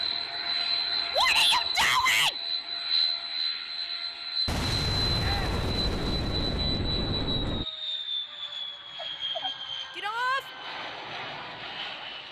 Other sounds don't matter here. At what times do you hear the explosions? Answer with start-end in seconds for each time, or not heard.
4.5-7.7.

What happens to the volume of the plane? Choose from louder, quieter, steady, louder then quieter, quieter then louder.
quieter.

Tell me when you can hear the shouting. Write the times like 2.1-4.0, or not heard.
1.1-2.4, 5.2-5.7, 9.9-10.4.